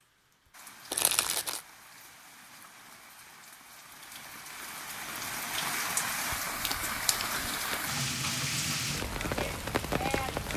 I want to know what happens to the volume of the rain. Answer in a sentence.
The loudness of the rain goes up.